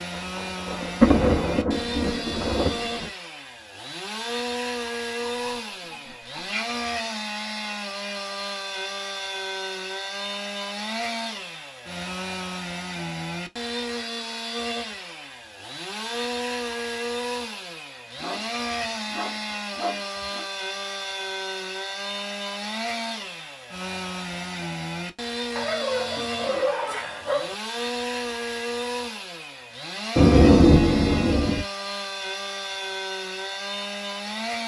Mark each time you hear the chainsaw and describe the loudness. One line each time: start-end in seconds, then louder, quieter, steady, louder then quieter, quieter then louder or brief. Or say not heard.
0.0-34.6 steady.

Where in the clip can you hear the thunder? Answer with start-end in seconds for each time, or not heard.
0.3-3.1, 30.1-31.6.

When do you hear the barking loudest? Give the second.
27 s.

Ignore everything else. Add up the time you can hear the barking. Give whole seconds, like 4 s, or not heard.
6 s.